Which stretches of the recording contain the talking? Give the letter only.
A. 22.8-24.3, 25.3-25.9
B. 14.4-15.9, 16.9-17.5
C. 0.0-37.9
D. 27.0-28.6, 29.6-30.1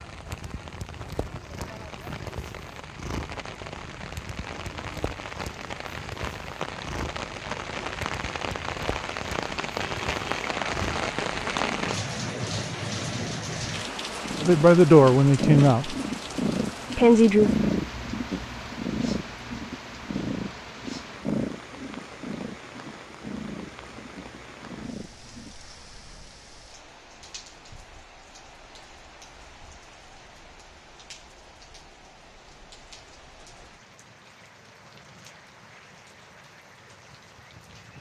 B.